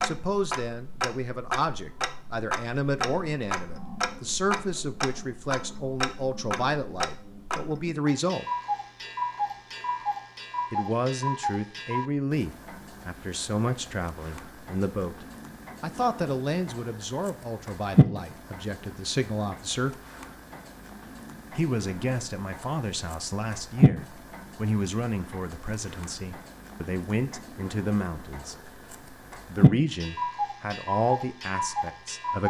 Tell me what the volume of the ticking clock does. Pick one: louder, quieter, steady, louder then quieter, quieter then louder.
steady.